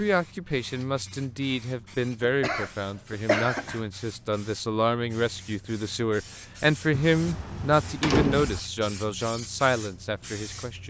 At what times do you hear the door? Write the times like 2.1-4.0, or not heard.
6.9-8.6.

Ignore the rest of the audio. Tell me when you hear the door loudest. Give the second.
8 s.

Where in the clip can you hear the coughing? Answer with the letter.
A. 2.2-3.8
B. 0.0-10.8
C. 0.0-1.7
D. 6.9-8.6
A.